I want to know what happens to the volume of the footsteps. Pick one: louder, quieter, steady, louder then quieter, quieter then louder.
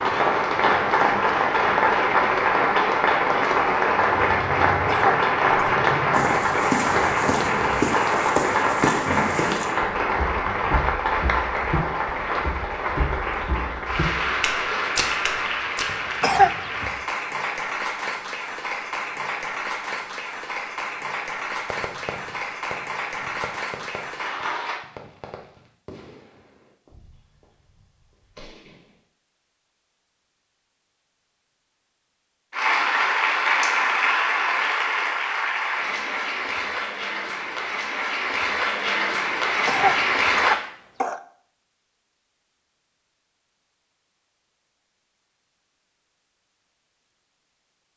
quieter then louder.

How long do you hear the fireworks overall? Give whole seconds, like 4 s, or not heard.
7 s.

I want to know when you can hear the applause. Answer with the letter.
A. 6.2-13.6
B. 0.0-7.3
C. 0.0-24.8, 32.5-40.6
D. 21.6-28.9
C.